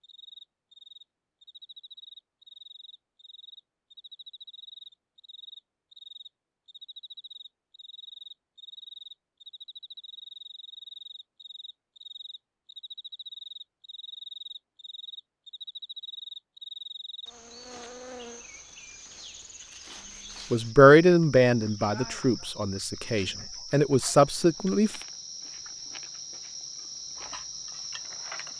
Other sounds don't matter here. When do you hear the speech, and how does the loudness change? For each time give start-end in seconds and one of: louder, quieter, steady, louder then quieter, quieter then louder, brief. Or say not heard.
20.5-24.9 quieter then louder.